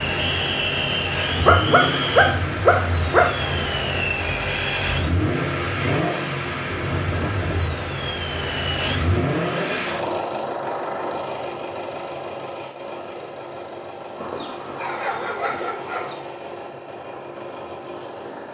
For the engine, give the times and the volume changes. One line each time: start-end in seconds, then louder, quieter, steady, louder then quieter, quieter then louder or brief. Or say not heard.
0.0-18.5 quieter.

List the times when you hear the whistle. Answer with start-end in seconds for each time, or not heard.
0.1-2.4.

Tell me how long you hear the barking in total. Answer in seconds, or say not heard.
4 s.